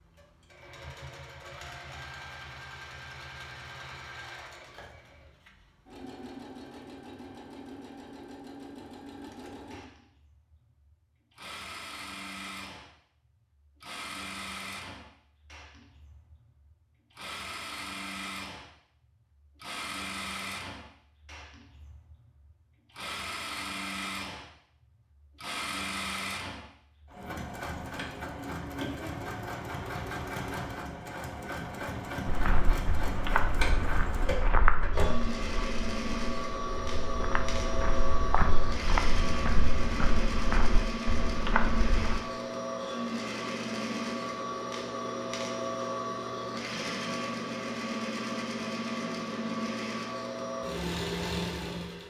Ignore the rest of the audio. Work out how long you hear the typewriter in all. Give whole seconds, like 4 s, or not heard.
not heard.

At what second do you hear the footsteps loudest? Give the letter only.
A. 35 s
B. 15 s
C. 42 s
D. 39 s
A.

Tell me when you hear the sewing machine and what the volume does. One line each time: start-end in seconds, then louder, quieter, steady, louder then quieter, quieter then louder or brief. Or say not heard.
0.0-52.0 louder.